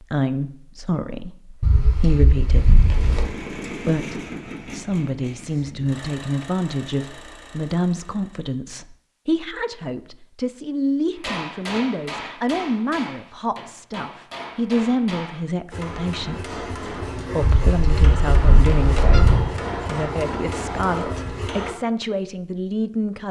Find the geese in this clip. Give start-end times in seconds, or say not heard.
1.6-3.3, 17.4-19.5.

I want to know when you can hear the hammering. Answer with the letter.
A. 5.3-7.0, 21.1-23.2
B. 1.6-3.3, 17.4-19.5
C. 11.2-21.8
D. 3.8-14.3
C.